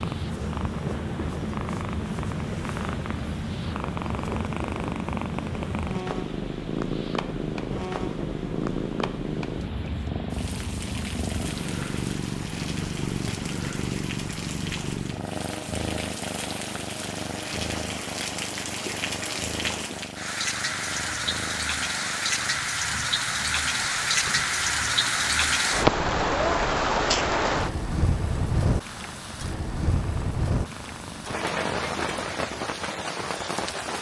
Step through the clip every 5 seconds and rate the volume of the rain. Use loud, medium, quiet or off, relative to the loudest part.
quiet, quiet, quiet, medium, loud, loud, medium.